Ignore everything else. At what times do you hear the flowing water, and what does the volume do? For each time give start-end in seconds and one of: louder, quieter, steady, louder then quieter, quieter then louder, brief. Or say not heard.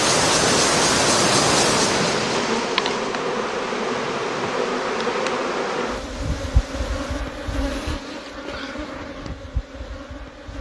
0.0-7.2 quieter.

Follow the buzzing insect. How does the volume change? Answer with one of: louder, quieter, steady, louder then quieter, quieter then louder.
quieter.